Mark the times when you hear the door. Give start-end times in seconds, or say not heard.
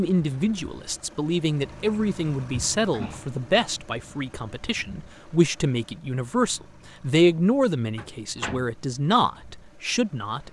2.6-3.4, 8.0-8.7.